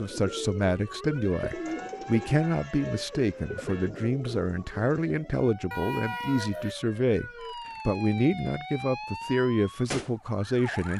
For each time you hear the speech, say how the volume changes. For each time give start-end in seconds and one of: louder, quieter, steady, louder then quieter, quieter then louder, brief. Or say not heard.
0.0-10.9 steady.